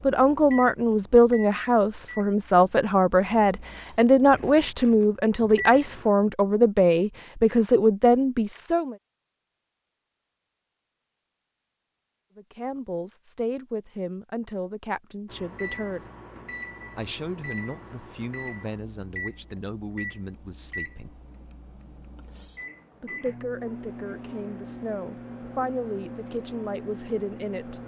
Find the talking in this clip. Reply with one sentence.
You can hear the talking from 0.0 to 8.9 s, from 12.3 to 16.0 s, from 16.9 to 21.2 s and from 23.0 to 27.8 s.